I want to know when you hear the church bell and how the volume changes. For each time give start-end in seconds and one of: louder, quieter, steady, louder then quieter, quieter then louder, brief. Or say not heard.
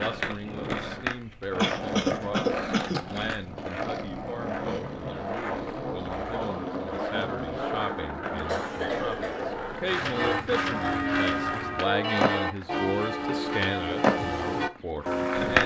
10.1-15.6 steady.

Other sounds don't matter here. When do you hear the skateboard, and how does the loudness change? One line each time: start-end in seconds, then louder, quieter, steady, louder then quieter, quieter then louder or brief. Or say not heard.
0.0-15.6 steady.